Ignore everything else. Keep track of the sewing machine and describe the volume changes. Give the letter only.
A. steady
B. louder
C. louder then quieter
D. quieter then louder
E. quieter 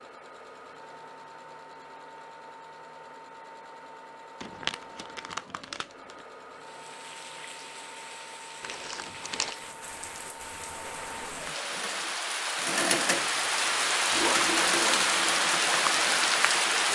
B.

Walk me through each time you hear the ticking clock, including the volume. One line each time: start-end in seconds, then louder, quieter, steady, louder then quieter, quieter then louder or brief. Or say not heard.
not heard.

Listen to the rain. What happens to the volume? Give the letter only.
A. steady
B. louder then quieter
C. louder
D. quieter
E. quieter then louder
C.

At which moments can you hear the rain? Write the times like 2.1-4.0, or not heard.
6.5-16.9.